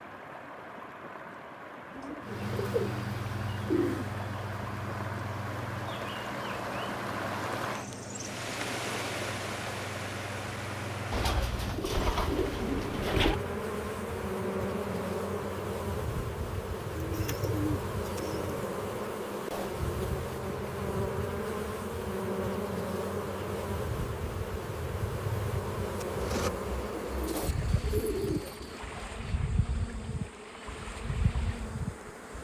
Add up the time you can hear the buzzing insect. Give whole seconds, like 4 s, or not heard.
30 s.